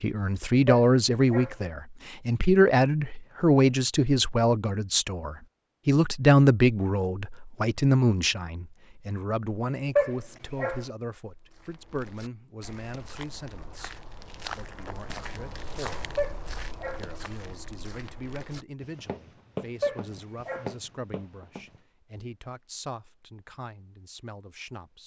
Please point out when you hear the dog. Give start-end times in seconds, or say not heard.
0.7-1.6, 9.9-10.8, 16.1-17.1, 19.8-20.7.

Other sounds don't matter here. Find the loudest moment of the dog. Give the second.
10 s.